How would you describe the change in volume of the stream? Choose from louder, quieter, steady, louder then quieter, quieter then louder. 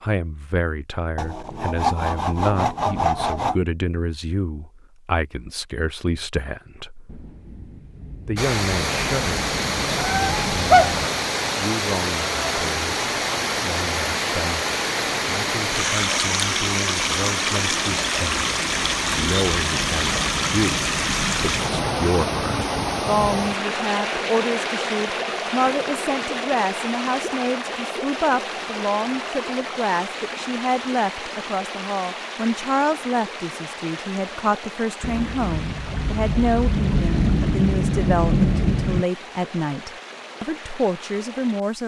quieter.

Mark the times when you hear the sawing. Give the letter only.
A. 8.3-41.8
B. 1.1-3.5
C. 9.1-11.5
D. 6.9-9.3
B.